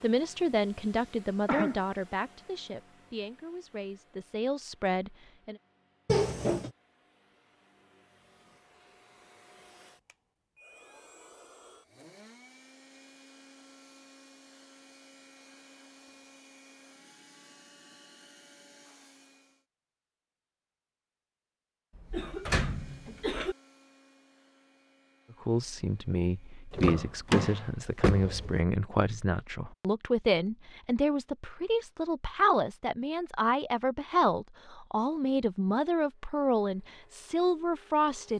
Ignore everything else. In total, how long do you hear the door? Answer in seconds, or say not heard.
3 s.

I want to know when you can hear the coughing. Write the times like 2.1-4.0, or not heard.
1.4-1.9, 21.9-23.6.